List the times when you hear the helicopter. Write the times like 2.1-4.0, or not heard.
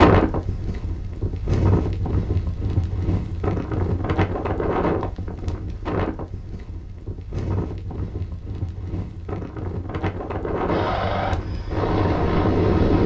10.7-13.0.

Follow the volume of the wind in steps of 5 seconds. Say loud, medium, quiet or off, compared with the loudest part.
loud, medium, loud.